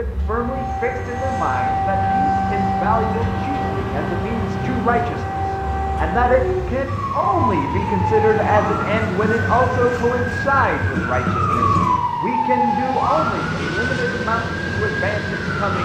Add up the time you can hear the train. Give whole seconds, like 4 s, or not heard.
16 s.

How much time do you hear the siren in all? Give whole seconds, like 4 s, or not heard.
16 s.